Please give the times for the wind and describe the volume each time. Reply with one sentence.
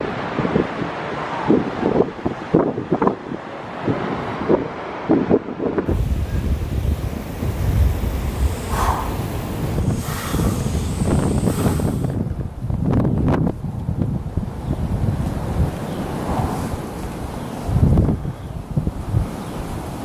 You can hear the wind from 0.0 to 20.0 s, at a steady volume.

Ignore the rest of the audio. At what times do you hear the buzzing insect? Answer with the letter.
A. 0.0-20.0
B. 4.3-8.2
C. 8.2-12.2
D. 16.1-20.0
C.